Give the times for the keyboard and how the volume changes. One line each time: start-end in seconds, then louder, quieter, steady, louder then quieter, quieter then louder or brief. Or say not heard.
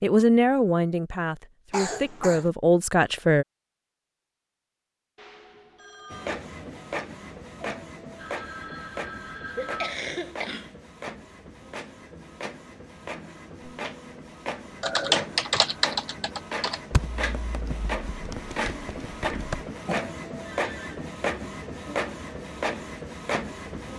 14.8-19.6 quieter.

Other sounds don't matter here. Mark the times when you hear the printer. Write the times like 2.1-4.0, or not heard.
6.1-23.9.